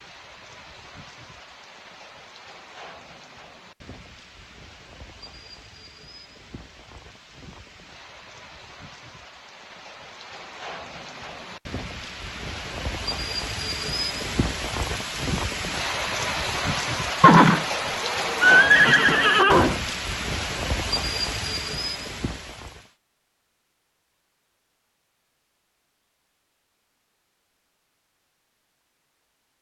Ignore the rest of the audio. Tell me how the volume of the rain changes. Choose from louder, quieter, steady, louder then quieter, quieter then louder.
louder.